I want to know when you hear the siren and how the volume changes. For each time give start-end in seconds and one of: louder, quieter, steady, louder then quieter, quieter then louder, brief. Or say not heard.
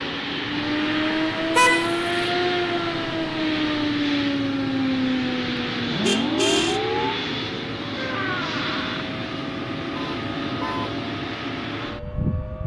0.0-12.6 quieter.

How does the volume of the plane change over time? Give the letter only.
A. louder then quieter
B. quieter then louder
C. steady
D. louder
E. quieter
C.